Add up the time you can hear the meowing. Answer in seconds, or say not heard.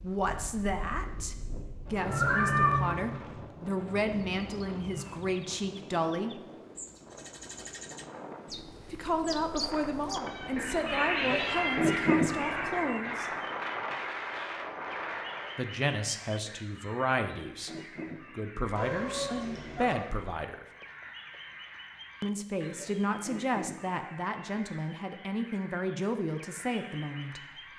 5 s.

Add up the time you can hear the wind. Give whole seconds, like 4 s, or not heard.
16 s.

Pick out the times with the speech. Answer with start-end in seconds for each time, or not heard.
0.0-6.5, 8.9-13.3, 15.6-17.7, 18.3-20.6, 22.2-27.4.